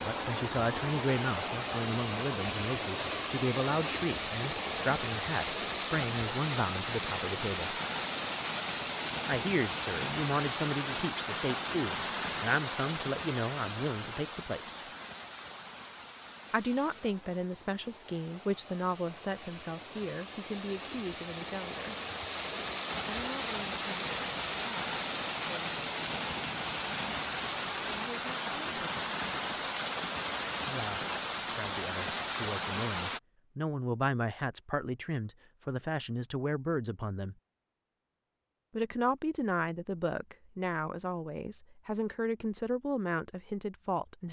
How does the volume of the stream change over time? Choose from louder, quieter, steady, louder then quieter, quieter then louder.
quieter then louder.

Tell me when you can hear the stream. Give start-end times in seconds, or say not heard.
0.0-33.2.